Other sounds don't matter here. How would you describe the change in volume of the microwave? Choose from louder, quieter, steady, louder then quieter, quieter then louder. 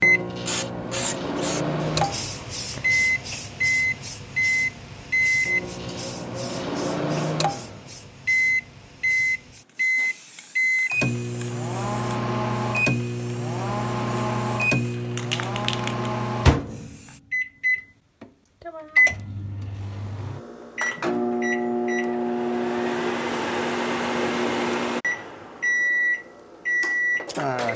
steady.